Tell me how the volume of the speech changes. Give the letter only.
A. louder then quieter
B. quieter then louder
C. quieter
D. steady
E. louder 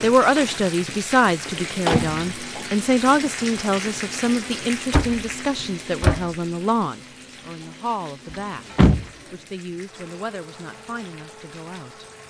C.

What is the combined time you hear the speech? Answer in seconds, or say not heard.
12 s.